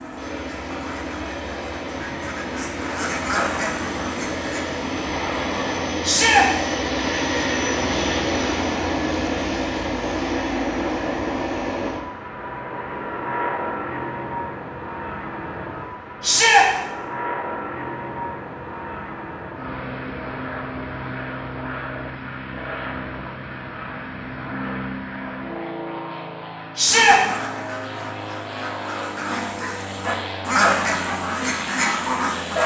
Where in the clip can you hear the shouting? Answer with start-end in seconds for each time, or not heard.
6.0-6.5, 16.2-16.6, 26.8-27.2.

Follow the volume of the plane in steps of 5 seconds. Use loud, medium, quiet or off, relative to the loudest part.
medium, loud, loud, medium, medium, medium, medium.